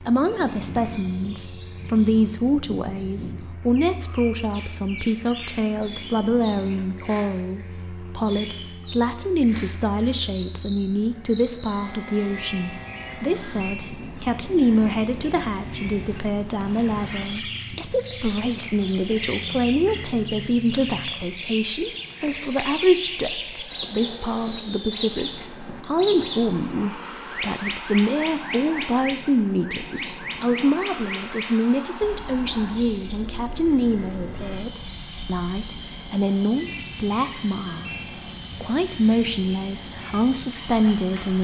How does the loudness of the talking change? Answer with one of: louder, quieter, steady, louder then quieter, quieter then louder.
steady.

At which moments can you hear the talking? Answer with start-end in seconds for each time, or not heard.
0.0-41.3.